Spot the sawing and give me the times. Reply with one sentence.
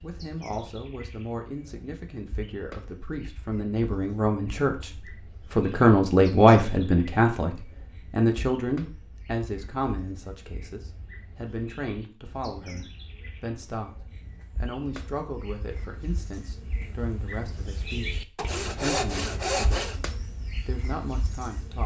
The sawing can be heard from 18.4 to 20.0 s.